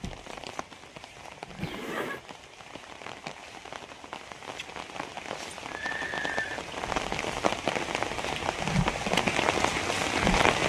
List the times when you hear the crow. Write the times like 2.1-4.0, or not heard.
not heard.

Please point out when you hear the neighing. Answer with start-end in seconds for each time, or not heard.
1.6-2.2, 5.8-6.6.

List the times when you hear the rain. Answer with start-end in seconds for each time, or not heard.
0.0-10.6.